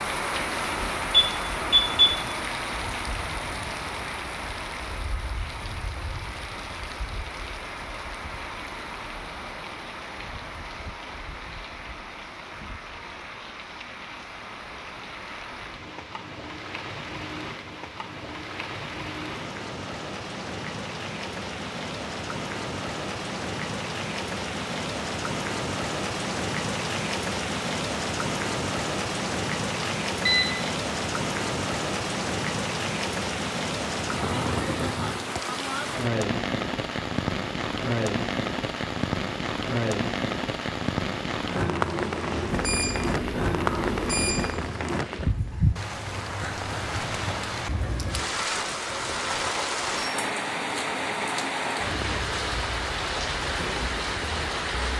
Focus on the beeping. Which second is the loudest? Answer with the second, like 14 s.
2 s.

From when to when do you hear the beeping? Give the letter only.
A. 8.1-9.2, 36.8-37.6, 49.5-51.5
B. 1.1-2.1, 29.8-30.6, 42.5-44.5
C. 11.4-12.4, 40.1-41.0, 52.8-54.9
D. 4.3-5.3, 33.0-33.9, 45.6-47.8
B.